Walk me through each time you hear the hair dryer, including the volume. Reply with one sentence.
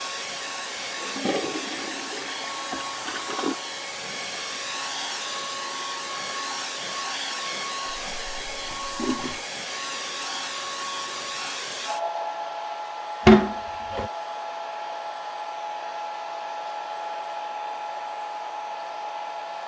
The hair dryer can be heard from 0.0 to 19.6 s, at a steady volume.